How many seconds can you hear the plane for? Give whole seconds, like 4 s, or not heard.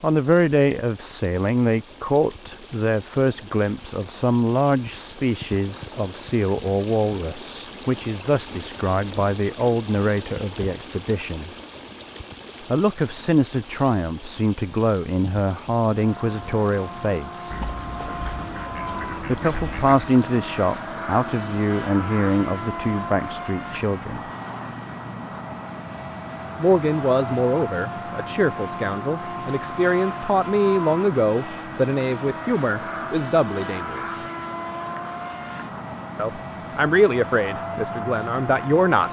23 s.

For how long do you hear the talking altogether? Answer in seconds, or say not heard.
32 s.